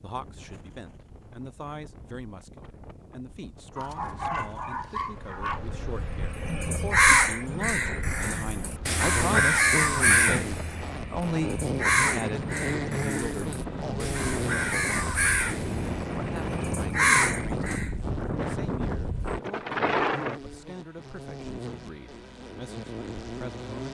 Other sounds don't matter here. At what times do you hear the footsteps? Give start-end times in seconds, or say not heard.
not heard.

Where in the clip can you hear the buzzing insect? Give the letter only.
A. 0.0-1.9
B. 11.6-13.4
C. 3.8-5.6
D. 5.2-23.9
D.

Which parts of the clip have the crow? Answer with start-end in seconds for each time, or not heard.
6.3-17.9.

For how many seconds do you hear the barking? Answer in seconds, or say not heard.
2 s.